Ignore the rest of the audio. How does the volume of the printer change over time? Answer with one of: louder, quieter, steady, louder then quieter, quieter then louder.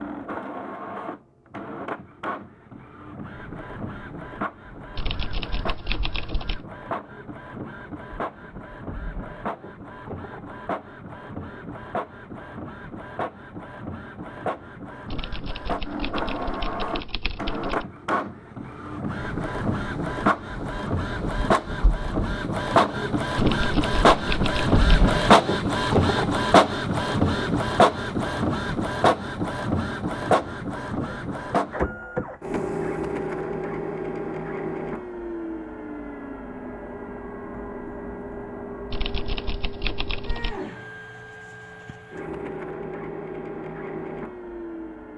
louder then quieter.